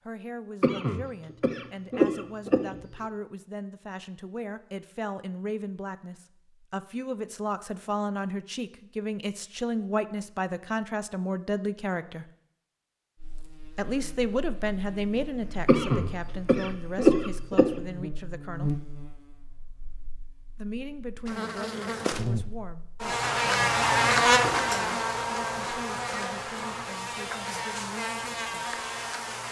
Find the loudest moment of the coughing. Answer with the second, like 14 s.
17 s.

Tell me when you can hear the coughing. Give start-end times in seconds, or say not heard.
0.6-2.8, 15.7-17.7.